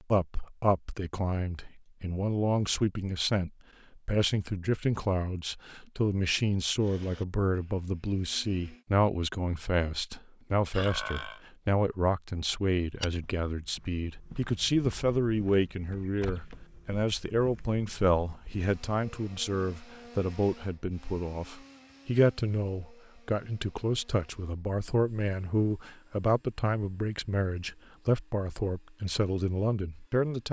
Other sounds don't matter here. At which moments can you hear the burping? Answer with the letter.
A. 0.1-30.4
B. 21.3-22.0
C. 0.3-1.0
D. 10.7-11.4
D.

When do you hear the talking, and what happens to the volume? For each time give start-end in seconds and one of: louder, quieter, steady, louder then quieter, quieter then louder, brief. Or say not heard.
0.1-30.4 steady.